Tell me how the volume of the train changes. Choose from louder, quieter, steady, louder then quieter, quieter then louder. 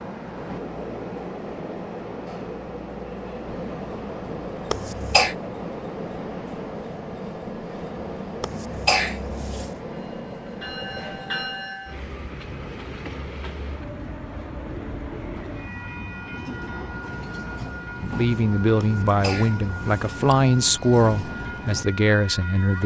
steady.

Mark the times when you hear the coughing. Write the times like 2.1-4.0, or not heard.
4.7-5.3, 8.4-9.7, 18.8-20.2.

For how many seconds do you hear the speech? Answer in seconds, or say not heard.
5 s.